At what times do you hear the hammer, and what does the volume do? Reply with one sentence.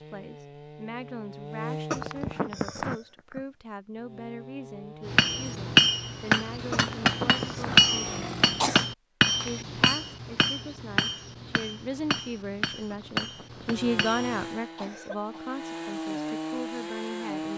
The hammer can be heard from 5.0 to 14.5 s, getting quieter.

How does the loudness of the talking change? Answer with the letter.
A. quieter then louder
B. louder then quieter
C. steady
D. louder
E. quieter
B.